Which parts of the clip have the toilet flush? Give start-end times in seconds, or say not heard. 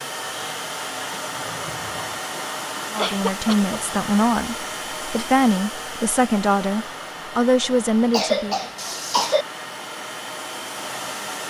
0.2-2.2, 8.8-9.3.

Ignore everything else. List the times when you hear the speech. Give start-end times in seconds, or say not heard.
2.9-8.6.